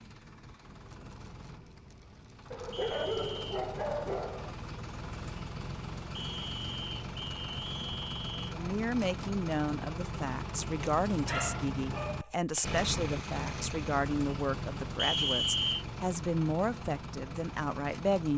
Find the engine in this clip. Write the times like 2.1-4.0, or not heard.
0.0-18.3.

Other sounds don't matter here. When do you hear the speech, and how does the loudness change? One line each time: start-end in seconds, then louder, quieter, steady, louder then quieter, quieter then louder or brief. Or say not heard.
8.5-18.3 steady.